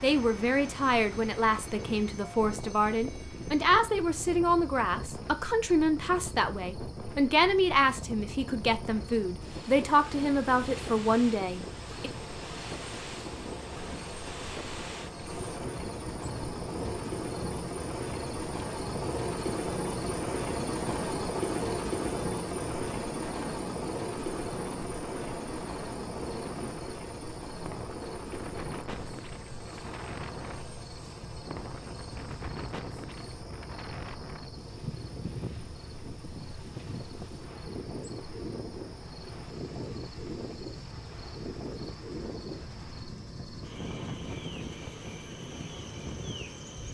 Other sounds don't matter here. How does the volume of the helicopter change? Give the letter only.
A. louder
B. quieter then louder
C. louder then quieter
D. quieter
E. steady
C.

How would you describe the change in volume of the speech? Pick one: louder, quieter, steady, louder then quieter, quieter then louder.
steady.